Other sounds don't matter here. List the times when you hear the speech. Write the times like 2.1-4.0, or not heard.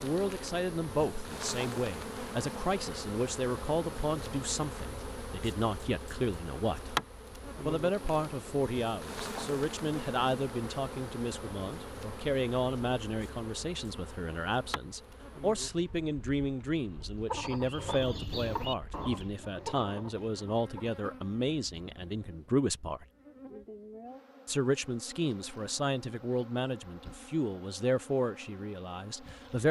0.0-7.0, 7.7-23.1, 24.4-29.6.